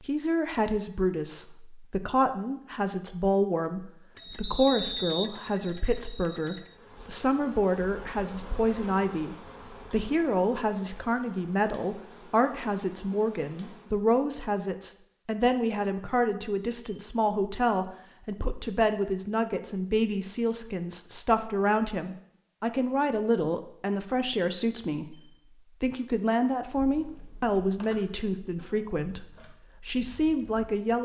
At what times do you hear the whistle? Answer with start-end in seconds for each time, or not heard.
4.4-5.3.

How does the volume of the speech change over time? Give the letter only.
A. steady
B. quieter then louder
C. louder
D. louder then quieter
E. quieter
A.